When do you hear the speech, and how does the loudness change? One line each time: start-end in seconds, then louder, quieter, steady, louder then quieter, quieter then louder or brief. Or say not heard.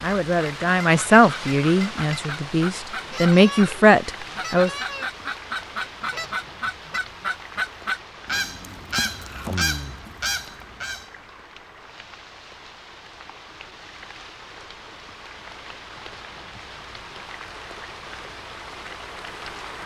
0.0-4.7 quieter then louder.